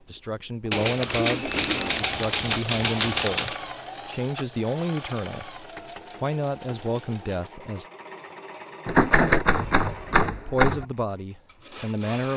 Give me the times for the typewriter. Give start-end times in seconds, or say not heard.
0.7-3.5, 8.8-10.8.